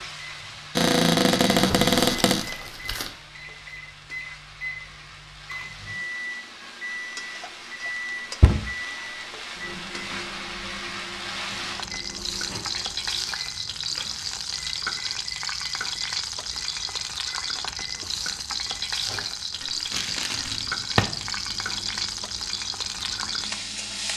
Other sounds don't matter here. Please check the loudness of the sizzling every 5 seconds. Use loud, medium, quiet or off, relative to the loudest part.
quiet, medium, loud, loud, loud.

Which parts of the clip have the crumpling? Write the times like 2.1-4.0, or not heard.
1.5-3.1, 19.9-20.6.